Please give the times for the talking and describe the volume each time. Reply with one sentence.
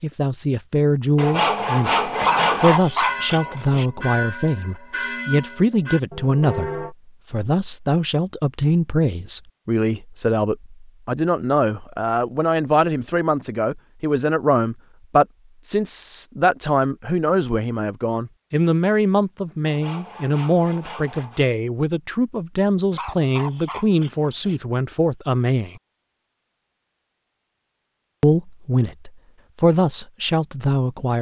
The talking can be heard from 0.0 to 25.8 s, at a steady volume; and briefly from 28.2 to 31.1 s.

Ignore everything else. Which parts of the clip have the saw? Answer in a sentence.
The saw can be heard from 1.1 to 2.9 s and from 19.6 to 21.4 s.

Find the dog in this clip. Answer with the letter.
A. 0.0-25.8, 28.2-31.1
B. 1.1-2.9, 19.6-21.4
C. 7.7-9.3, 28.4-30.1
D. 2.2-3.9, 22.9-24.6
D.